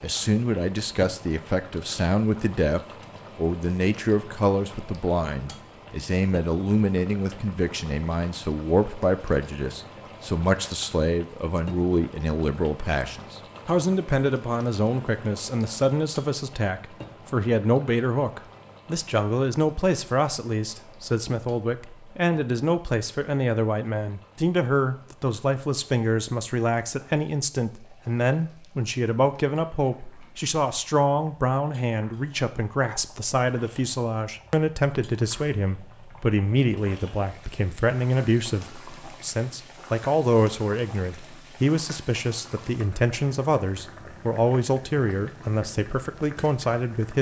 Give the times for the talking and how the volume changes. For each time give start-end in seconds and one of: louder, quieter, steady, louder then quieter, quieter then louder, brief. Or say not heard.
0.0-47.1 steady.